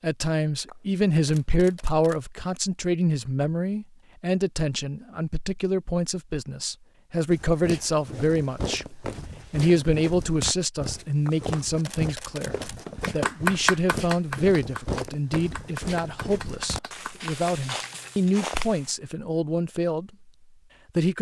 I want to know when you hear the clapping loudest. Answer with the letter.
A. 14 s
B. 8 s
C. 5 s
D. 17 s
A.